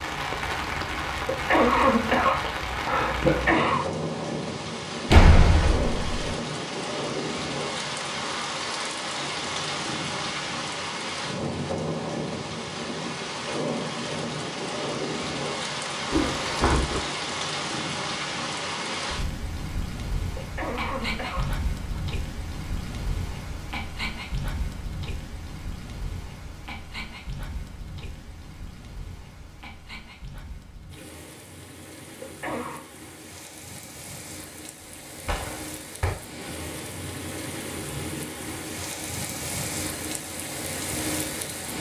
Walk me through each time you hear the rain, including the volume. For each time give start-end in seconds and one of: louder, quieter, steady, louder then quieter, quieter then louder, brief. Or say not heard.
0.0-41.7 quieter then louder.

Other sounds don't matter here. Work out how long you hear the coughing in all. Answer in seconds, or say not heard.
5 s.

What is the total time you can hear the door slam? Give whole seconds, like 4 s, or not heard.
3 s.